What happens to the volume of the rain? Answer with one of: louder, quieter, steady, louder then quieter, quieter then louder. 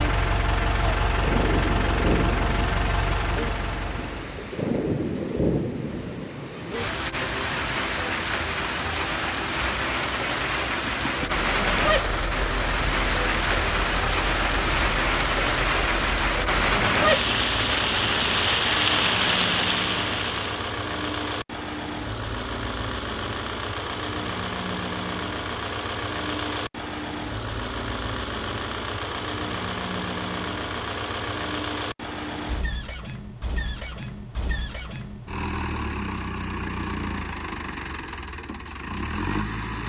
louder.